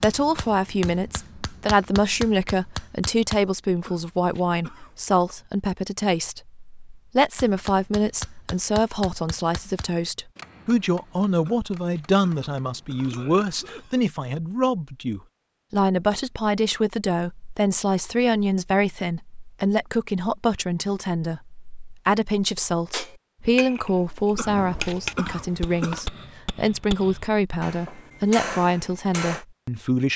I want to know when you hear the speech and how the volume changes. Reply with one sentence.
The speech can be heard from 0.0 to 30.1 s, at a steady volume.